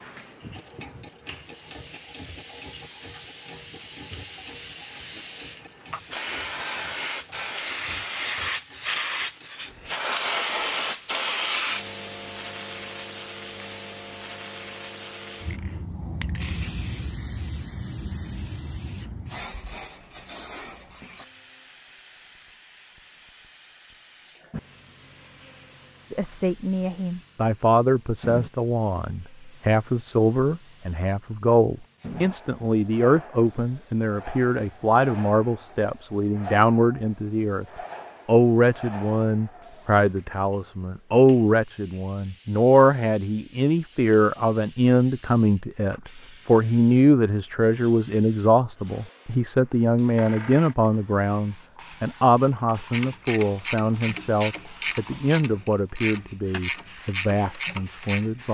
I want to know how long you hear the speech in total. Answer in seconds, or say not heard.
32 s.